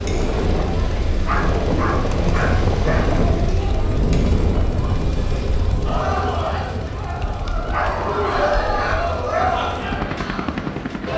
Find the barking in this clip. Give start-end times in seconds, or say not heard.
1.2-3.2, 7.7-9.7.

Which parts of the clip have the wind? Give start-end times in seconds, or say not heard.
0.0-11.1.